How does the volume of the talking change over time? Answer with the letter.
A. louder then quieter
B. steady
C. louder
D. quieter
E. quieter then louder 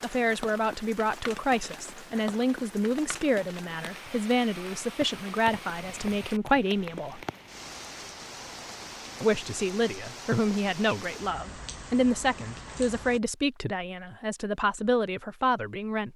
B.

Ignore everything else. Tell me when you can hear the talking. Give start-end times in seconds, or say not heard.
0.0-7.2, 9.2-16.1.